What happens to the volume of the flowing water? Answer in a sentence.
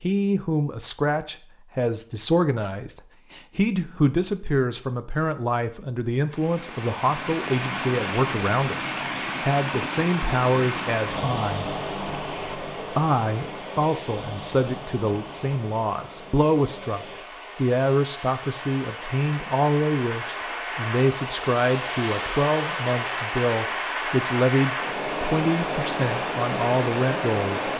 The loudness of the flowing water goes down, then up.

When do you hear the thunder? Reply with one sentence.
You can't hear the thunder here.